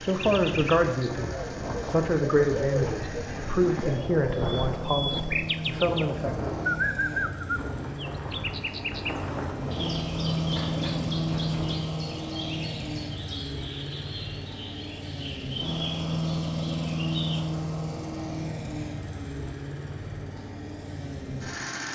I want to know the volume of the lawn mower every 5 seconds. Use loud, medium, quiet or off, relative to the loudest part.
medium, medium, loud, loud, medium.